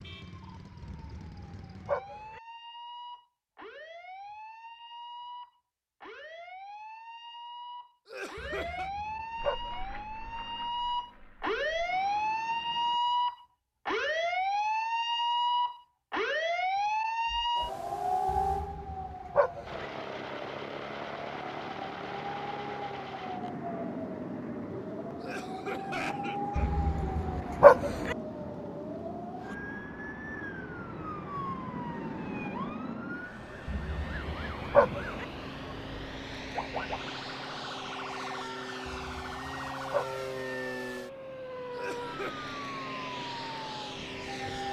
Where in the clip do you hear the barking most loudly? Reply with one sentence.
The loudest moment of the barking is at 28 seconds.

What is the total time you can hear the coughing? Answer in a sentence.
The coughing can be heard for 3 seconds in total.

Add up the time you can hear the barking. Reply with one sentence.
You can hear the barking for 9 seconds altogether.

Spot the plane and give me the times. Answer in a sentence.
You can hear the plane from 9.3 to 13.0 s and from 19.6 to 44.6 s.